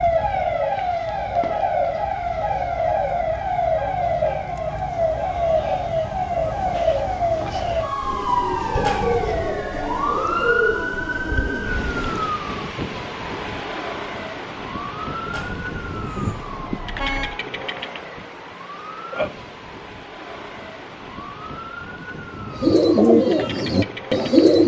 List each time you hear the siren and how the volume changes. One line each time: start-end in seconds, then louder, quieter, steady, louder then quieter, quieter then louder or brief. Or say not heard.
0.0-24.6 quieter.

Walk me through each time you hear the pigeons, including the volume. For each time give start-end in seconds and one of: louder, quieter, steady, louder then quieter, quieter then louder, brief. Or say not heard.
0.1-12.3 steady
22.6-24.6 brief.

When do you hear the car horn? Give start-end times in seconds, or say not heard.
8.8-9.6, 15.2-17.2.